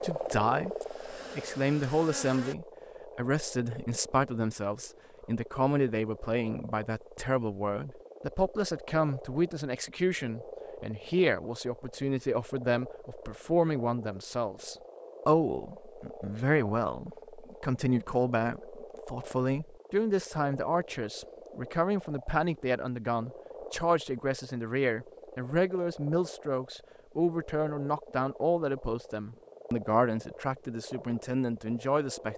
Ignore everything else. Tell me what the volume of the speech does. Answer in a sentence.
The volume of the speech stays about the same.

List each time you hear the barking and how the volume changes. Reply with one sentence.
The barking can't be heard in this clip.